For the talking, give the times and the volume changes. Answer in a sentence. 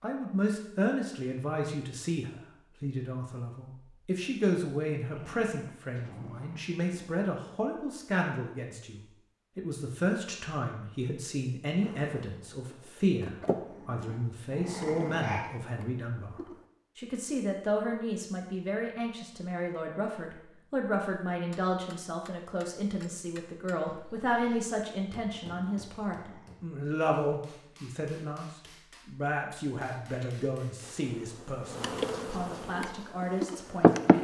The talking can be heard from 0.0 to 34.2 s, at a steady volume.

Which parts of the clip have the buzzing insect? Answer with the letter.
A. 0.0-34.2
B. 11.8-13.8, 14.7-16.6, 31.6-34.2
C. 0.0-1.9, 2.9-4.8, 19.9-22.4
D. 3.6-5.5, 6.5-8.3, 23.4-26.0
B.